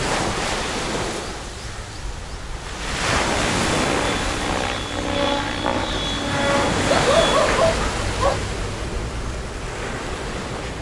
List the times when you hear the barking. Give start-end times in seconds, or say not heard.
6.8-8.4.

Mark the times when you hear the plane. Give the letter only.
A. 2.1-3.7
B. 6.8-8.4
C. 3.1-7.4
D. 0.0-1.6
C.